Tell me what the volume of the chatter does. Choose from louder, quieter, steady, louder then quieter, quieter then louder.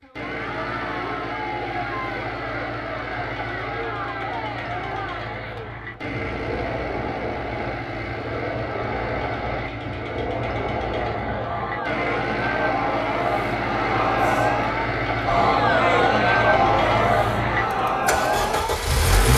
louder.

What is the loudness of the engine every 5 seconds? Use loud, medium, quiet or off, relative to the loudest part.
medium, medium, loud, loud.